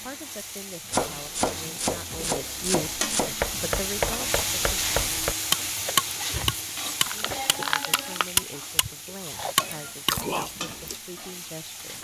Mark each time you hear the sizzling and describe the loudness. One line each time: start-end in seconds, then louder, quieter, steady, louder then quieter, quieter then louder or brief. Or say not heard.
0.0-11.9 louder then quieter.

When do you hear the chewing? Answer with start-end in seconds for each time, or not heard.
5.7-11.0.